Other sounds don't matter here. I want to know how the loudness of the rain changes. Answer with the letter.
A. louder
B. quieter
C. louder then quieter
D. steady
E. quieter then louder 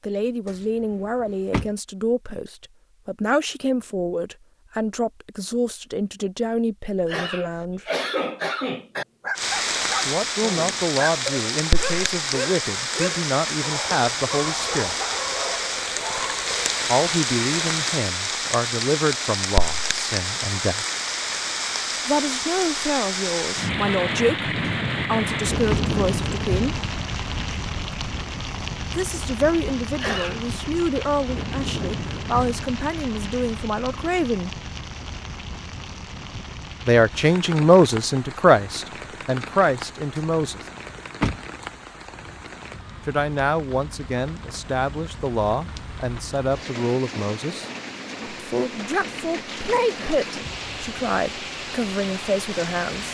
B.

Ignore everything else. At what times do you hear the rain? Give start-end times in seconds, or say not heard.
9.3-53.0.